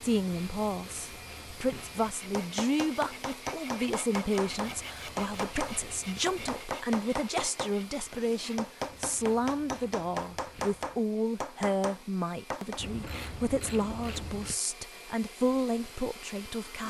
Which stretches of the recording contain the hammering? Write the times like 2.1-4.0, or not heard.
2.3-12.8.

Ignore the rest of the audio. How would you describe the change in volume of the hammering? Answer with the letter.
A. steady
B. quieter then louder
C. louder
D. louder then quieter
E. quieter
A.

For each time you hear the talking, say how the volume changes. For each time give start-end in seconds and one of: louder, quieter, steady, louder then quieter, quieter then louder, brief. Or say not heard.
0.0-16.8 steady.